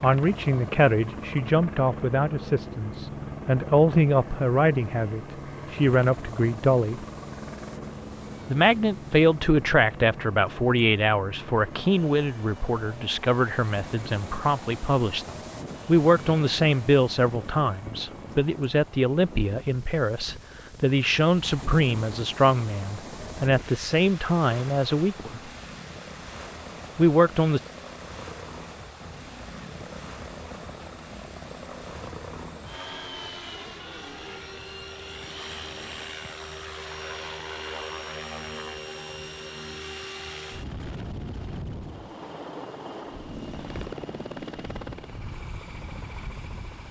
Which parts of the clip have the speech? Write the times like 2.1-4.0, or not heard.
0.0-7.0, 8.5-25.4, 26.9-27.6.